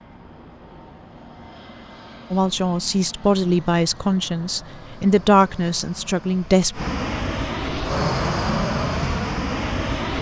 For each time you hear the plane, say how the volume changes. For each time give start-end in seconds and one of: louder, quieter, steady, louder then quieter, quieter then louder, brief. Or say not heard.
0.0-10.1 louder.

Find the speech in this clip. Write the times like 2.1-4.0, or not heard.
2.3-6.8.